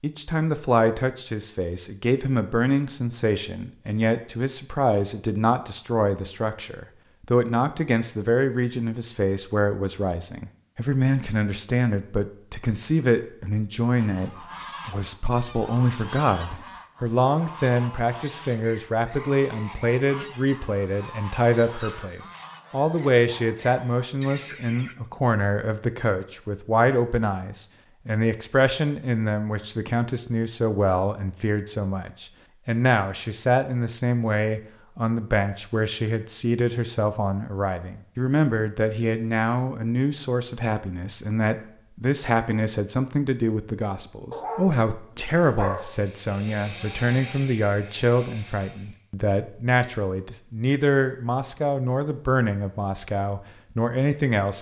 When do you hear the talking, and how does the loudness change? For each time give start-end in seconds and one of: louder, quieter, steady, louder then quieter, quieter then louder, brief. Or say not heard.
0.0-54.5 steady.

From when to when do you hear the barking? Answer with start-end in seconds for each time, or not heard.
44.3-46.0.